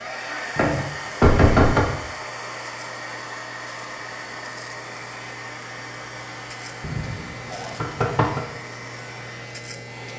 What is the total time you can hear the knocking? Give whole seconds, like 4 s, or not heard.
3 s.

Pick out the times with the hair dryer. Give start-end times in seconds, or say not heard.
0.0-10.1.